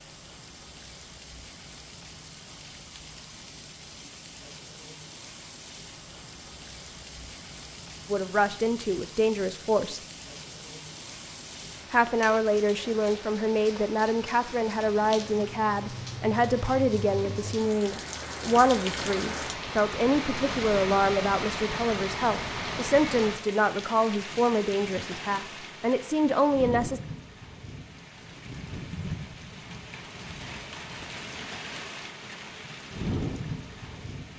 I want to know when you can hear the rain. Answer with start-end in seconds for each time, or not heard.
0.0-34.3.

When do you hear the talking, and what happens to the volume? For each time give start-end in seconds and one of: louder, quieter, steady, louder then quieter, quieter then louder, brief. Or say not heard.
8.1-10.0 brief
11.9-27.0 steady.